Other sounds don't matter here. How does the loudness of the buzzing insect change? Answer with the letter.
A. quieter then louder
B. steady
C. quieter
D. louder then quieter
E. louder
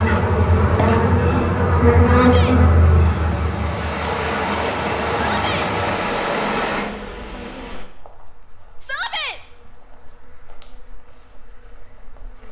C.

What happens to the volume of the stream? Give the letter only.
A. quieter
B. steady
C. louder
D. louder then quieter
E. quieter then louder
C.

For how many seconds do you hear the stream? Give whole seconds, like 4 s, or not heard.
7 s.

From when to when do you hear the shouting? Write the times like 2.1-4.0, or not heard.
2.0-2.6, 5.3-5.7, 8.8-9.4.